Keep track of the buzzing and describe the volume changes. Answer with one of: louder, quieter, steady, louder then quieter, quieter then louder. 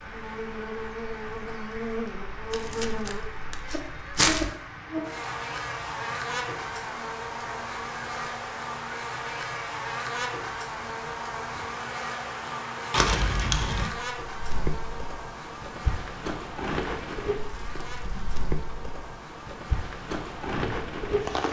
quieter.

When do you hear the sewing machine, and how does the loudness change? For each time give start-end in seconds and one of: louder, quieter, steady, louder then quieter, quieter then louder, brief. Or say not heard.
not heard.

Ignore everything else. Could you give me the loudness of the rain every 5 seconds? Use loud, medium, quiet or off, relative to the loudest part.
medium, medium, medium, medium, loud.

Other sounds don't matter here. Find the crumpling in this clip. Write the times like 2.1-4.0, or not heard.
2.5-4.5, 12.9-13.9.